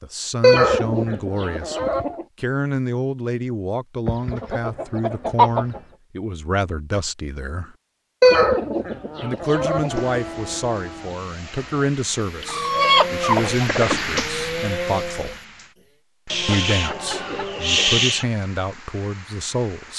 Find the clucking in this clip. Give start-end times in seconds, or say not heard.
0.4-2.2, 4.0-5.8, 8.2-10.2, 12.4-14.2, 16.3-18.2.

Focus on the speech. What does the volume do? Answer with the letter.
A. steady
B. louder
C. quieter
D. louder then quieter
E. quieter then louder
A.